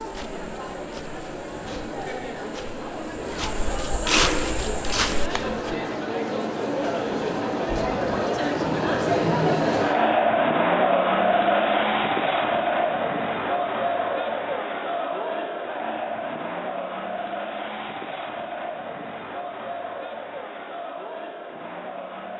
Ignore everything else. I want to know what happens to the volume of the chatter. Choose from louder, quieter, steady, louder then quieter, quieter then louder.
louder then quieter.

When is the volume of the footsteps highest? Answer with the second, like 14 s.
4 s.